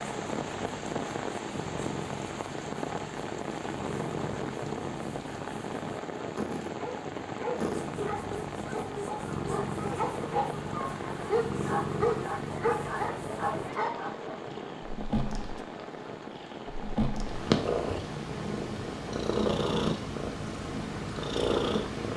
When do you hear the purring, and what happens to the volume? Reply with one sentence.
You can hear the purring from 0.0 to 22.1 s, getting louder.